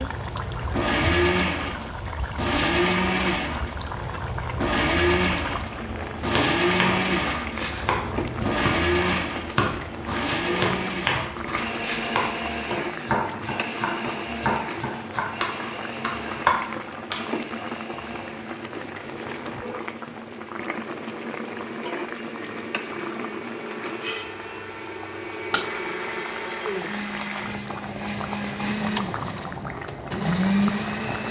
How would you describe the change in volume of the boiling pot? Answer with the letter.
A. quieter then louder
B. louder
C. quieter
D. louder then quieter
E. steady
E.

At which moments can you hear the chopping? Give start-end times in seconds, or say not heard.
6.3-17.2.